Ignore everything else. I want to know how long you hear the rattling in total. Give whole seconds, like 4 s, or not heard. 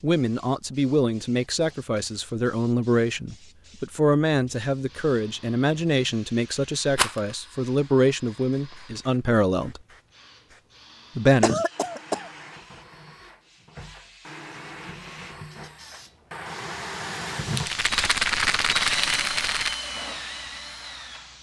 3 s.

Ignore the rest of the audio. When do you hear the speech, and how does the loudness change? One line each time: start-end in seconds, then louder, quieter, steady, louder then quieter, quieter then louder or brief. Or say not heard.
0.0-9.8 steady
11.2-11.6 brief.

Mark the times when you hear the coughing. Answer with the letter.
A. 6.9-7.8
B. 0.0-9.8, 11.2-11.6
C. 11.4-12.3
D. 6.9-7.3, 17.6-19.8
C.